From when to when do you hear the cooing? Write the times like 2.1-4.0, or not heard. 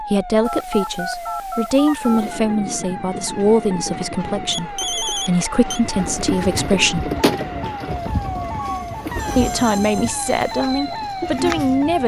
5.8-11.7.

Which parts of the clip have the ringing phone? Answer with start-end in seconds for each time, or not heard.
0.5-2.4, 4.5-5.8, 9.2-9.7.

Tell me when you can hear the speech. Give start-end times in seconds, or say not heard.
0.0-7.1, 9.3-12.0.